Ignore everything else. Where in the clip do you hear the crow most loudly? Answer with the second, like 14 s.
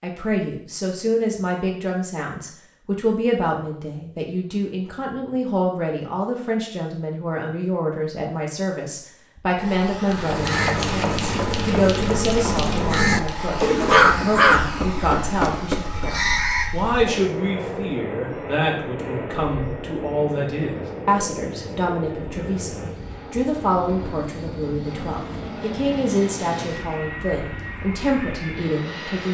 14 s.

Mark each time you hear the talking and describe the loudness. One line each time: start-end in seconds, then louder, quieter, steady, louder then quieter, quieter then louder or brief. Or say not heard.
0.0-29.2 steady.